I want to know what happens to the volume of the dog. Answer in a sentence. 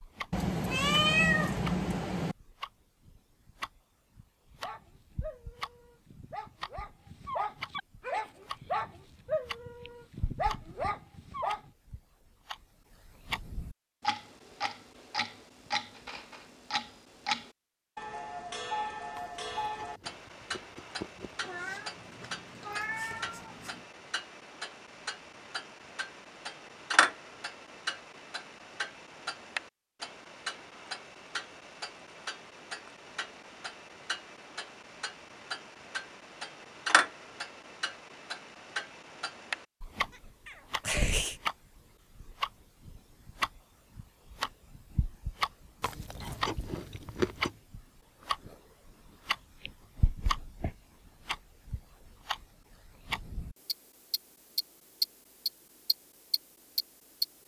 The loudness of the dog goes up.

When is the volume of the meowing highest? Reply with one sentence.
The loudest moment of the meowing is at 1 second.